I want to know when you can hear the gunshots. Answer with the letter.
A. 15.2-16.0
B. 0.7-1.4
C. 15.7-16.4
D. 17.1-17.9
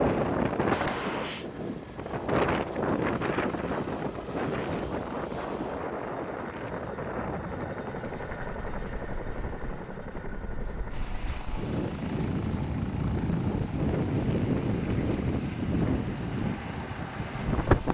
B.